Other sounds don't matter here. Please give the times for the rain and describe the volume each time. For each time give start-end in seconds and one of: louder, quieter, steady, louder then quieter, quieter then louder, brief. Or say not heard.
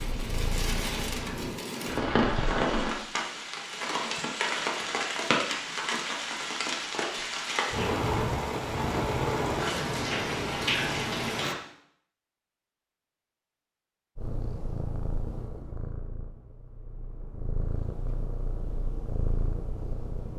0.0-11.6 steady.